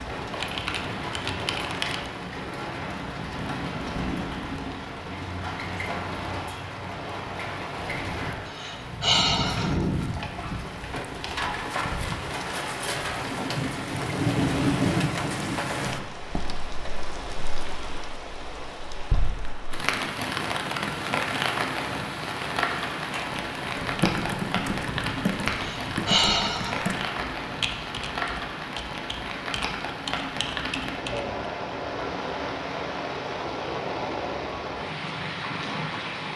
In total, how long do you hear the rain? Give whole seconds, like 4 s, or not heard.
36 s.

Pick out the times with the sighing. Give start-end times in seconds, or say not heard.
8.4-9.8, 25.6-26.9.